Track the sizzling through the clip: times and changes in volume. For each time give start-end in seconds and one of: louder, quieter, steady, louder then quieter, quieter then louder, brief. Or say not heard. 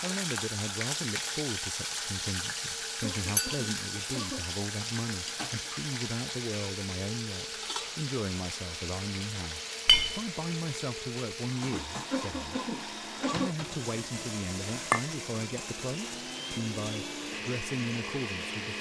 0.0-18.7 quieter.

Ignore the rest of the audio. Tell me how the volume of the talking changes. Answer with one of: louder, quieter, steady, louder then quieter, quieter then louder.
steady.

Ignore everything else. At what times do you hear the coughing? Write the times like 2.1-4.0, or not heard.
3.0-4.5, 12.1-13.6.